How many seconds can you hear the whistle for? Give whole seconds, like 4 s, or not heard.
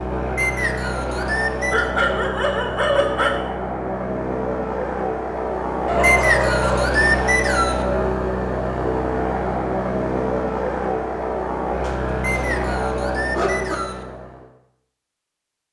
5 s.